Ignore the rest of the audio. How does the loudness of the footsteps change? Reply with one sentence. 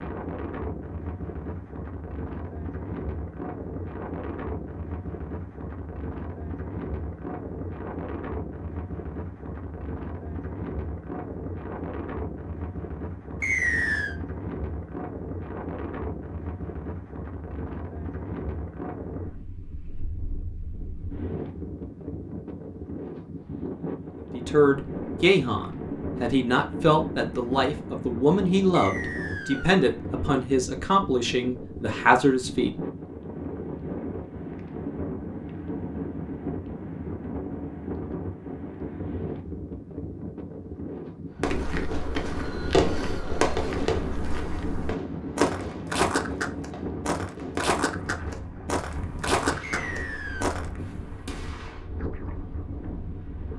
The volume of the footsteps goes up.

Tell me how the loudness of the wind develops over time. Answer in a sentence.
The volume of the wind stays about the same.